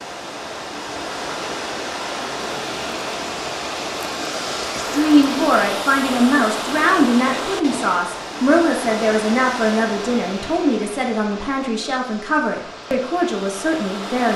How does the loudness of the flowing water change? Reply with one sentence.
The volume of the flowing water goes down.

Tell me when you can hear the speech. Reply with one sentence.
The speech can be heard from 4.9 to 14.3 s.